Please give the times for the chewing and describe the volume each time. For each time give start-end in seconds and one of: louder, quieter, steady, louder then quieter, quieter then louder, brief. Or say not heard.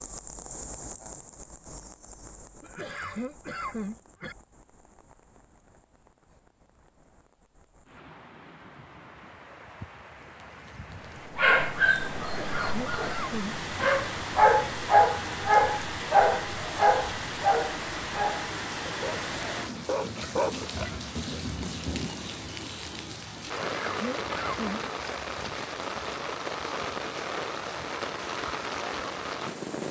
not heard.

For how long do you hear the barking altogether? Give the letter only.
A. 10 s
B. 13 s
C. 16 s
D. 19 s
A.